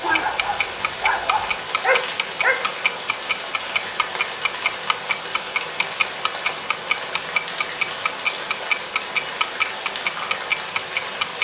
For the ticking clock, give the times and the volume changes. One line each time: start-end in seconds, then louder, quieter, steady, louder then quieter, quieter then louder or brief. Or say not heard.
0.1-11.3 louder.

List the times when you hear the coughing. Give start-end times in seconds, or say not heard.
not heard.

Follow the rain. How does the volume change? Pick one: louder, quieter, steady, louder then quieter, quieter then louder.
steady.